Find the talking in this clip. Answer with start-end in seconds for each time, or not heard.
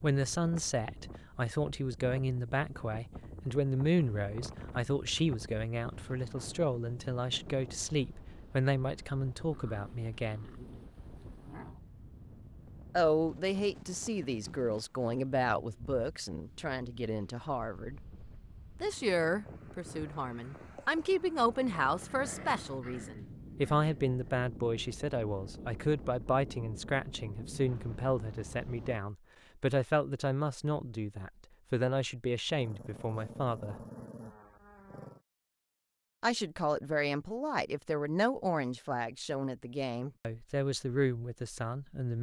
0.0-10.4, 12.9-18.0, 18.8-33.8, 36.2-42.1.